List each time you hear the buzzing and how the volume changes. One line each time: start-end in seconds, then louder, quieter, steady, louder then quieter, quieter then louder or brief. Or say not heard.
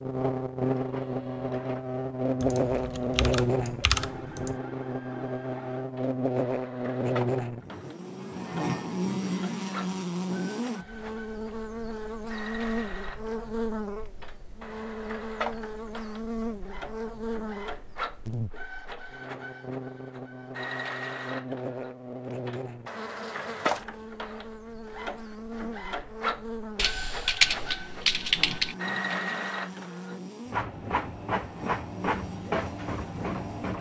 0.0-33.7 quieter.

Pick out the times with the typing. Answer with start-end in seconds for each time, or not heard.
2.4-4.6, 26.8-28.8.